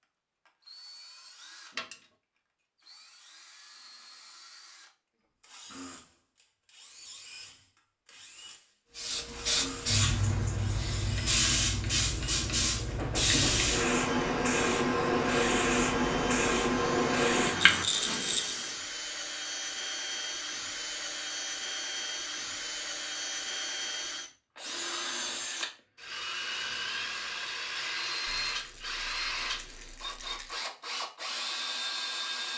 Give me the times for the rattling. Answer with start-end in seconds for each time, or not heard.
1.7-2.1, 17.6-18.6, 28.2-30.6.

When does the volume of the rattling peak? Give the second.
18 s.